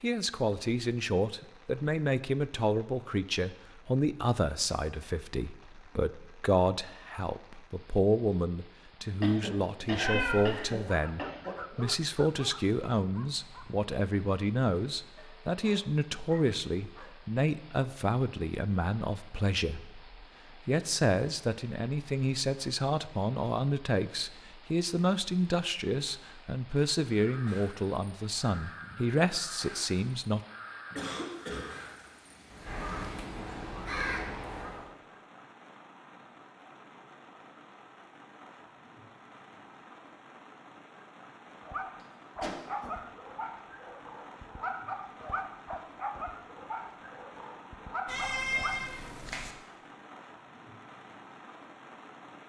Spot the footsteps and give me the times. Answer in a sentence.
You can't hear the footsteps here.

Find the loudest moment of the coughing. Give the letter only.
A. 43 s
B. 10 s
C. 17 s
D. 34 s
B.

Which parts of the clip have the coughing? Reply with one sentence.
The coughing can be heard from 9.2 to 11.6 s, from 30.9 to 31.7 s and from 42.0 to 43.0 s.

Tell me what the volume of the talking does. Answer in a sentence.
The volume of the talking stays about the same.